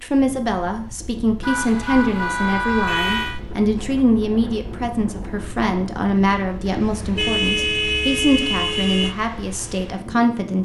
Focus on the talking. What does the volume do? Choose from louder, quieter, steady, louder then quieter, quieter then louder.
steady.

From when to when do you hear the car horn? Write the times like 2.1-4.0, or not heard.
1.4-3.4, 6.7-9.2.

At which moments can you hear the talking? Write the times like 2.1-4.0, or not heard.
0.0-10.6.